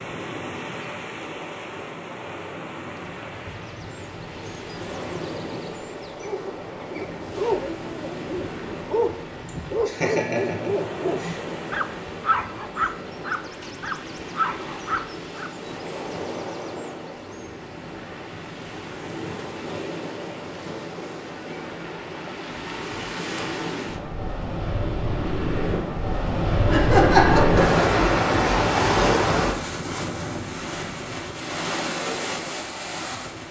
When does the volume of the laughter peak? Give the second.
27 s.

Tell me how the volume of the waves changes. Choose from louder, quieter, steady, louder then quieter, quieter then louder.
louder.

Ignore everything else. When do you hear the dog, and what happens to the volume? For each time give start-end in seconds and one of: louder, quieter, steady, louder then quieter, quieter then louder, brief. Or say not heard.
6.2-15.5 steady.